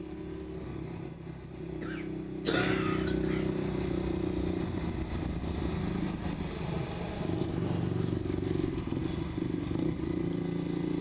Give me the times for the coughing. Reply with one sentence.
The coughing can be heard from 1.8 to 3.5 s.